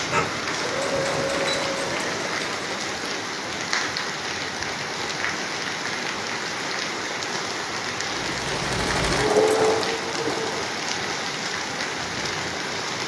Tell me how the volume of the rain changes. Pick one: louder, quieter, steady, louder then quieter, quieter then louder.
steady.